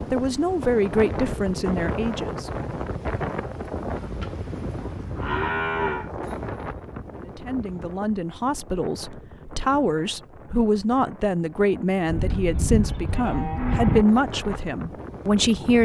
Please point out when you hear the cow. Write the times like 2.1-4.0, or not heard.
4.0-6.1, 12.1-14.1.